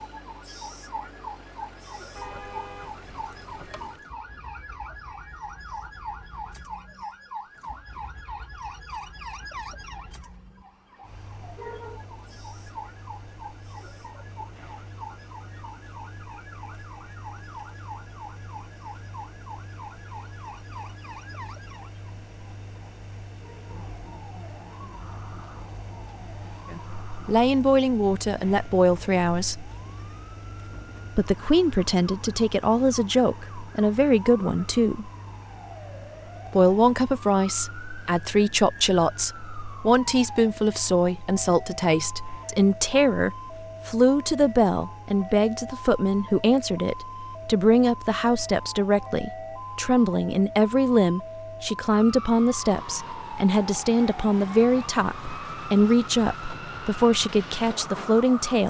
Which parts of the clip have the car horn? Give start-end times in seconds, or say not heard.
2.1-4.1.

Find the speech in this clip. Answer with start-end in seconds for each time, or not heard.
26.7-29.7, 31.1-35.1, 36.5-58.6.